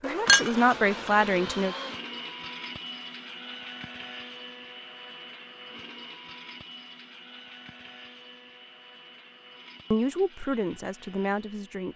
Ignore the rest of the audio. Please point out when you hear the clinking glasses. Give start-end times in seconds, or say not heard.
0.2-1.4.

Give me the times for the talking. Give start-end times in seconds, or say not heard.
0.0-1.8, 9.9-11.9.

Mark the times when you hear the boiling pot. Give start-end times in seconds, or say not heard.
not heard.